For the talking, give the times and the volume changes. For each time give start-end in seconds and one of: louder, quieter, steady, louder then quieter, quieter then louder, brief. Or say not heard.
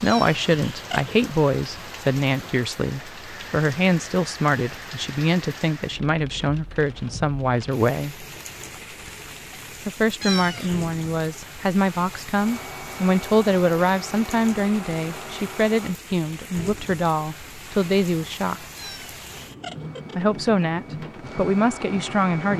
0.0-8.2 steady
9.8-18.6 steady
20.1-22.5 brief.